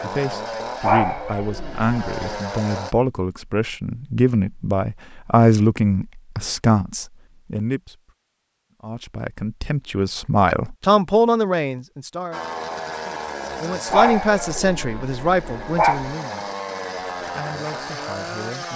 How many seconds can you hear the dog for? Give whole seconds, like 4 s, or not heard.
4 s.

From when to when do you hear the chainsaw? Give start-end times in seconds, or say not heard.
0.0-3.0, 12.3-18.7.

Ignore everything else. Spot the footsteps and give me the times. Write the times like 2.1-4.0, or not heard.
not heard.